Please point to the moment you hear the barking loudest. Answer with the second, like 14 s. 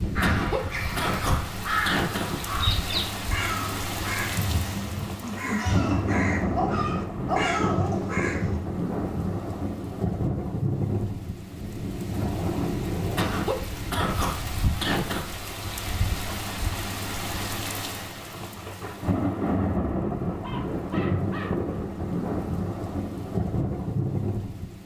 7 s.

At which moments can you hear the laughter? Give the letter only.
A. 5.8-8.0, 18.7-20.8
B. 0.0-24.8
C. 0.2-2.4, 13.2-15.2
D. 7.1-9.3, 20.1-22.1
C.